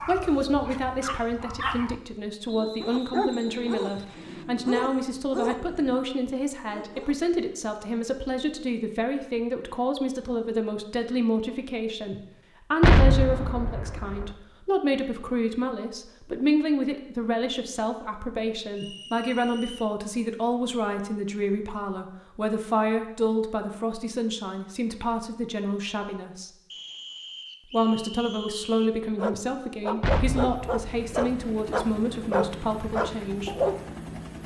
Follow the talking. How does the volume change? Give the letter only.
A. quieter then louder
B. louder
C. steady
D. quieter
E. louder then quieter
C.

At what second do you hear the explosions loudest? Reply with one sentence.
The volume of the explosions peaks at 13 seconds.